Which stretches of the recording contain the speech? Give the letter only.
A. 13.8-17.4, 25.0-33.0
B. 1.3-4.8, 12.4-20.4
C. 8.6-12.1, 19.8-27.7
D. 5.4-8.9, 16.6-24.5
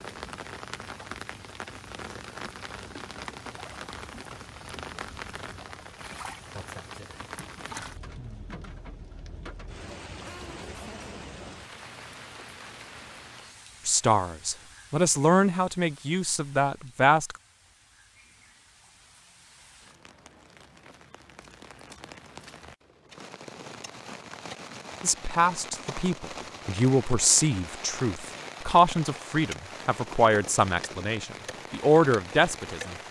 A.